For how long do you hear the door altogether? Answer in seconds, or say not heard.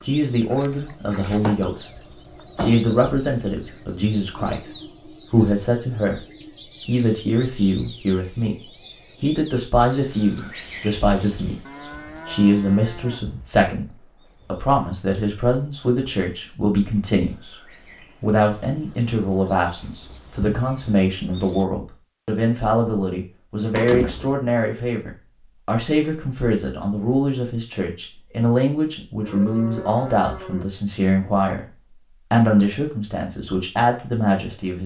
2 s.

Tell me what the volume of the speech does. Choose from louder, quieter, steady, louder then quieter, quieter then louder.
steady.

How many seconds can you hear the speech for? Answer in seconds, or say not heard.
34 s.